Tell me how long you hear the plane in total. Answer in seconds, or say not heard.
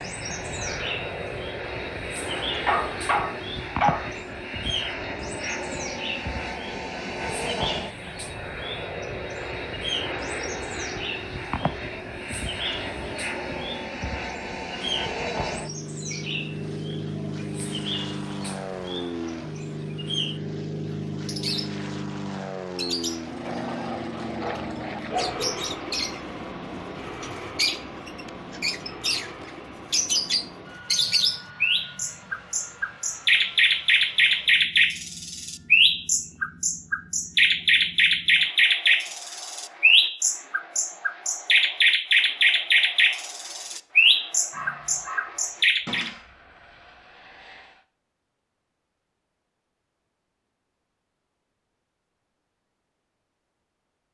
48 s.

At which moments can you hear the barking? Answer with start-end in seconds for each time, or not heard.
2.5-4.1, 24.4-25.6, 44.5-46.2.